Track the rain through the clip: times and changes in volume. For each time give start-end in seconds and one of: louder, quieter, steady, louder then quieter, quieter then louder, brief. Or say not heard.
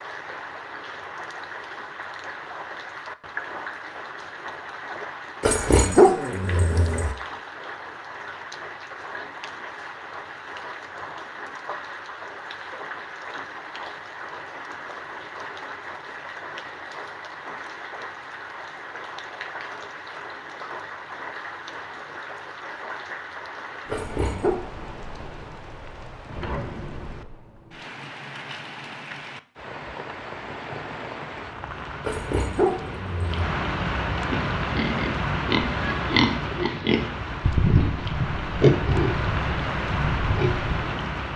0.0-41.3 louder.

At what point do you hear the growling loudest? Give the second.
6 s.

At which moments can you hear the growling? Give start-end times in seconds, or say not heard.
5.4-7.2, 23.9-24.6, 32.0-33.5.